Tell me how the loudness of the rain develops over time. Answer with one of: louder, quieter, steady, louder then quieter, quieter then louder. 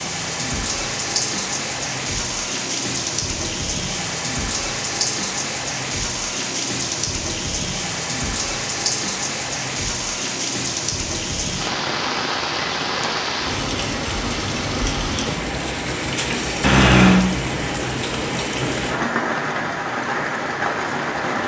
steady.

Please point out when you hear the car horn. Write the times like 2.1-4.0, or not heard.
16.6-17.2.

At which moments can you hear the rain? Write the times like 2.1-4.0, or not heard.
0.0-21.4.